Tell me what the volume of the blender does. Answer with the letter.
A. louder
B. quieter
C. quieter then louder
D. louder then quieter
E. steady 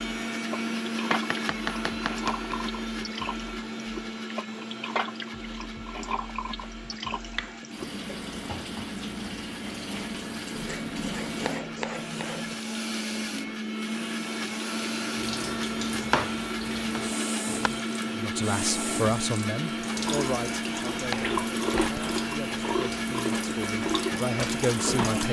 C.